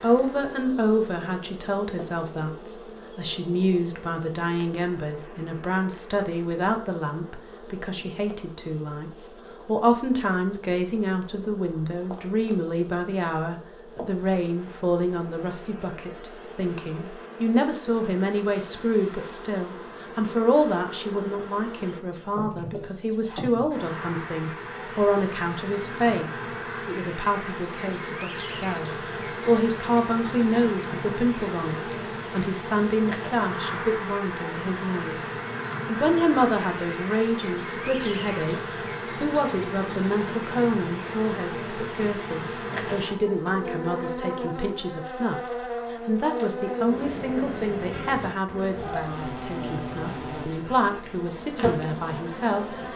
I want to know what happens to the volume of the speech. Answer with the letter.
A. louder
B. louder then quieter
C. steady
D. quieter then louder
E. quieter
C.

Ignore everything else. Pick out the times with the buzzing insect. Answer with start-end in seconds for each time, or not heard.
0.0-52.9.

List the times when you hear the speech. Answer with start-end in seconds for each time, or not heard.
0.0-45.4, 46.0-52.8.